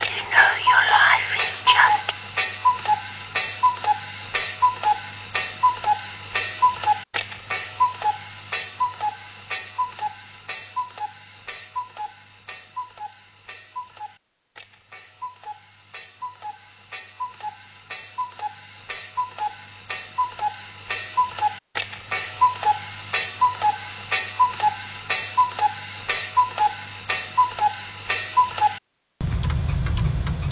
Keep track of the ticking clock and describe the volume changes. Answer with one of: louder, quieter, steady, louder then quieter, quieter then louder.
quieter then louder.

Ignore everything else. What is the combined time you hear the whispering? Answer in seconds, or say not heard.
2 s.